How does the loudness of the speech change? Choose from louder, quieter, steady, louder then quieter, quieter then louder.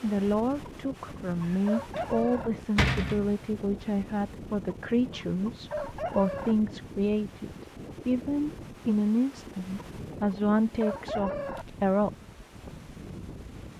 steady.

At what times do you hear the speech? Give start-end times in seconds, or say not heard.
0.0-12.2.